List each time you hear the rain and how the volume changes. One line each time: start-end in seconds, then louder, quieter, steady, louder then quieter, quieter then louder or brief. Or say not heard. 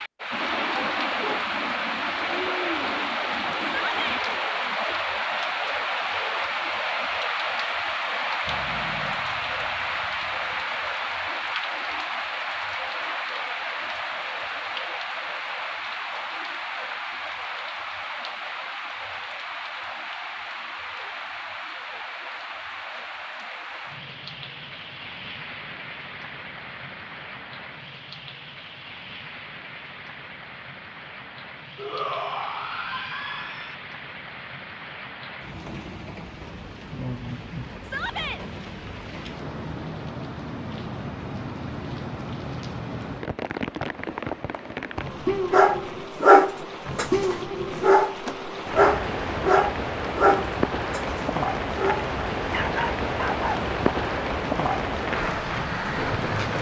0.0-56.5 quieter then louder.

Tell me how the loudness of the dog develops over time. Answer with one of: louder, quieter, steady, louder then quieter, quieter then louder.
quieter.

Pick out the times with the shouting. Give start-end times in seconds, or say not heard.
3.6-4.2, 31.8-33.8, 37.8-38.4.